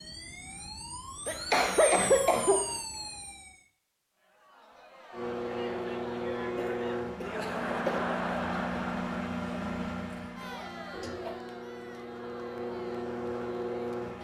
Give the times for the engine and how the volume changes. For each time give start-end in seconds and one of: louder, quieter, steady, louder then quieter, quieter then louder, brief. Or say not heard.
5.1-14.2 quieter then louder.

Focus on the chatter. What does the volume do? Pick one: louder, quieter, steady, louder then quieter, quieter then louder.
louder then quieter.